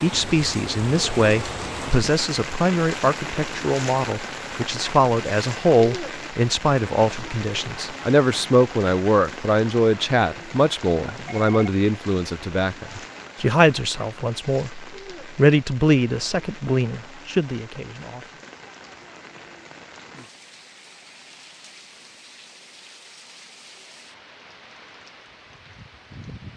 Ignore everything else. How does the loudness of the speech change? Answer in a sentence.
The loudness of the speech stays about the same.